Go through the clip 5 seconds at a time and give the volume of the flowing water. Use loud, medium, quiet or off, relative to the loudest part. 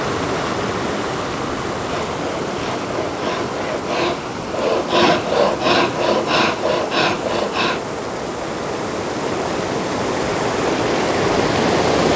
medium, medium, loud.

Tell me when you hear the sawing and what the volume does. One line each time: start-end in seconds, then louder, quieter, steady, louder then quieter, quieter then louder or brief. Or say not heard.
1.8-7.8 louder.